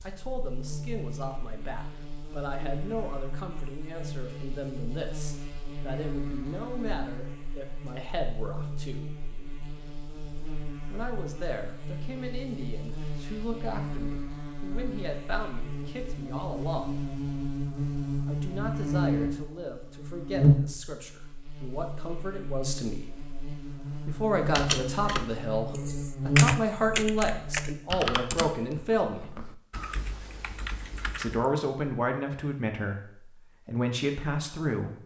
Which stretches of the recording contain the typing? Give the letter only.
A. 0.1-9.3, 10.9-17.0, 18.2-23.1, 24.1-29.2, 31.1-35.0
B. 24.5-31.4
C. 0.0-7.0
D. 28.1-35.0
B.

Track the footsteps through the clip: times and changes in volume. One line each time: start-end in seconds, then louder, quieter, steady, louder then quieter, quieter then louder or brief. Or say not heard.
not heard.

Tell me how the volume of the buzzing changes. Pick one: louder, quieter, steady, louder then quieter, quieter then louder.
louder.